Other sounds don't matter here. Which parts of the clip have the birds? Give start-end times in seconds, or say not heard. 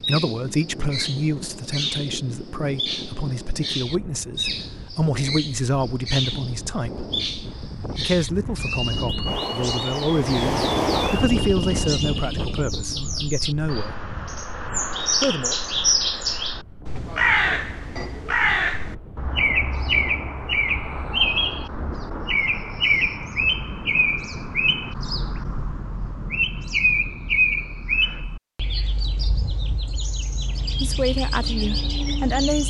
0.0-32.6.